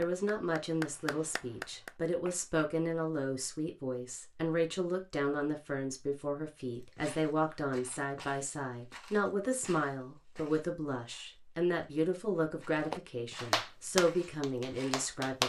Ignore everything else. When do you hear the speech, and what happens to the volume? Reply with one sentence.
You can hear the speech from 0.0 to 15.4 s, at a steady volume.